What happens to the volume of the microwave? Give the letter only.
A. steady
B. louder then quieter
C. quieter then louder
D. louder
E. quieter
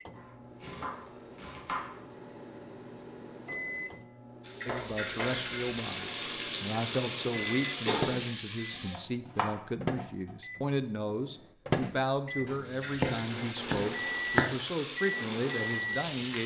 D.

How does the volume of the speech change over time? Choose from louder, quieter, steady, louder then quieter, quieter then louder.
steady.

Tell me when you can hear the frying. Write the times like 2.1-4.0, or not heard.
4.4-9.0, 12.6-16.4.